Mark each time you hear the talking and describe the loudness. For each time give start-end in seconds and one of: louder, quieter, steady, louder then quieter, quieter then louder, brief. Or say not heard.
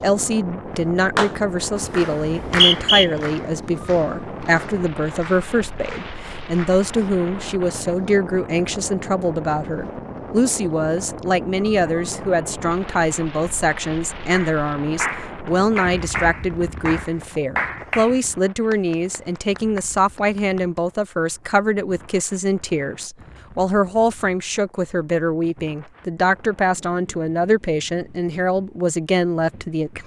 0.0-30.0 steady.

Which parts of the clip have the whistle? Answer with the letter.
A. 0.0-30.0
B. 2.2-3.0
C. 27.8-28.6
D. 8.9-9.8
B.